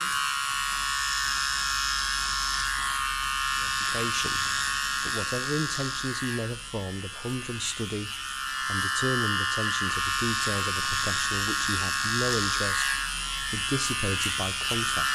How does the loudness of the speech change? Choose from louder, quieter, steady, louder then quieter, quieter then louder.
steady.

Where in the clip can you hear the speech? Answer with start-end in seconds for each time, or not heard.
3.6-15.0.